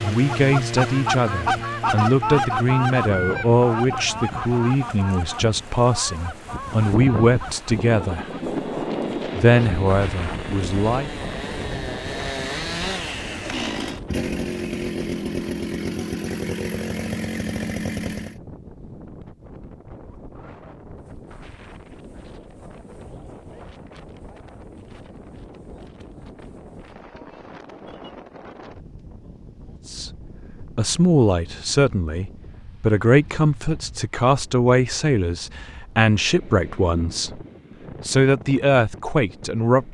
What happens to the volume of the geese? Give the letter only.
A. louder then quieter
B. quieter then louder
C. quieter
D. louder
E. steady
C.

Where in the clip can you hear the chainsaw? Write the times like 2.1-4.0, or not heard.
0.0-18.4.